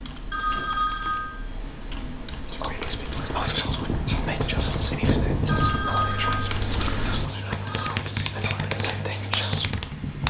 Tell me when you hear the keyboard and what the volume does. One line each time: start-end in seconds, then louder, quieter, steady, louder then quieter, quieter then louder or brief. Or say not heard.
0.0-10.2 louder.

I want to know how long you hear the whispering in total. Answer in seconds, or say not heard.
7 s.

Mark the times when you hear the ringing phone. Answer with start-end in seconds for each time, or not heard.
0.3-1.5, 5.5-7.9.